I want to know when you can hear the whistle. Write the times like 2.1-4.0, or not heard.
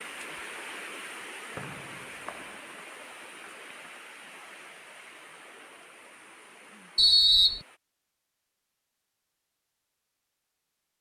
1.6-2.5, 7.0-7.6.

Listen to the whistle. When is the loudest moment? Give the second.
7 s.